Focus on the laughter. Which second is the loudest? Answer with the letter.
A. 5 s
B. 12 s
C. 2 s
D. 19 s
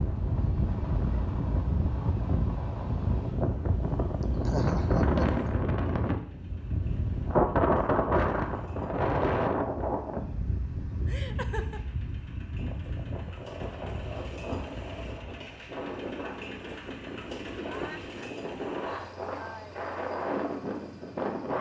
A.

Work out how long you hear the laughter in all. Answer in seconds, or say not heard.
4 s.